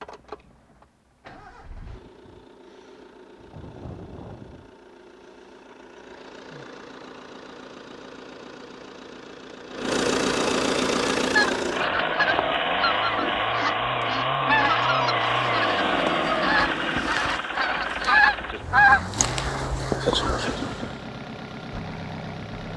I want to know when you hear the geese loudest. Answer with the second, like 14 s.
19 s.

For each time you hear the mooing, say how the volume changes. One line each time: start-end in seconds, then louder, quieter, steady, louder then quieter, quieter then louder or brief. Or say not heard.
not heard.